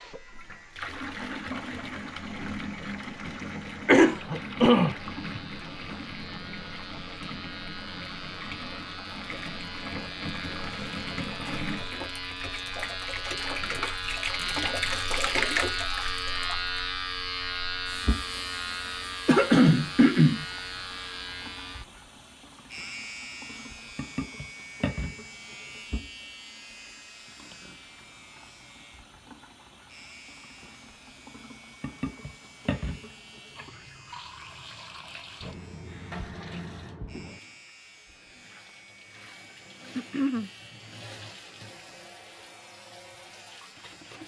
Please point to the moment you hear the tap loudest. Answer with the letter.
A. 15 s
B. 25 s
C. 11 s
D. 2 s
A.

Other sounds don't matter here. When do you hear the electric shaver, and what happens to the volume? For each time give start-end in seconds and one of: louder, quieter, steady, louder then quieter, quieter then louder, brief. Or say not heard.
0.0-44.2 louder then quieter.